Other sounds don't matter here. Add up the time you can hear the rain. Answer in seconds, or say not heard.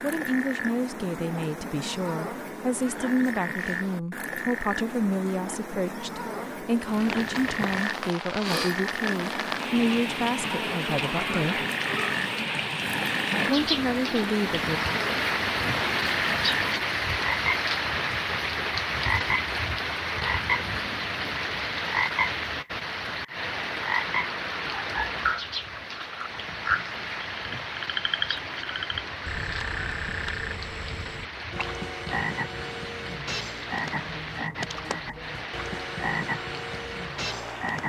31 s.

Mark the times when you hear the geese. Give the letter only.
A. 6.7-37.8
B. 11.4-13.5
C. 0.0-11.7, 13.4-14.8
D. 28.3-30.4
D.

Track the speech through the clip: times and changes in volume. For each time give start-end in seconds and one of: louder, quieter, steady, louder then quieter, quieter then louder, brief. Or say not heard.
0.0-11.7 steady
13.4-14.8 brief.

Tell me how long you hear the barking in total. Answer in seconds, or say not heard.
not heard.